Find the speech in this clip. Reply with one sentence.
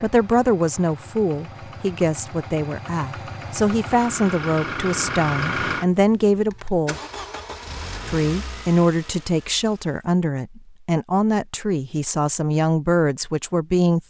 You can hear the speech from 0.0 to 7.0 s and from 8.1 to 14.0 s.